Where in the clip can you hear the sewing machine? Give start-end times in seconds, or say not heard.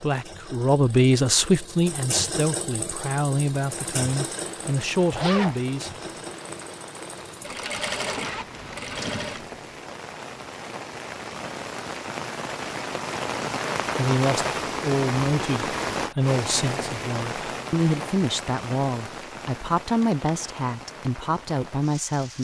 0.0-9.6.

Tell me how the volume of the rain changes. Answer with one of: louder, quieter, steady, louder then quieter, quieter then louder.
louder then quieter.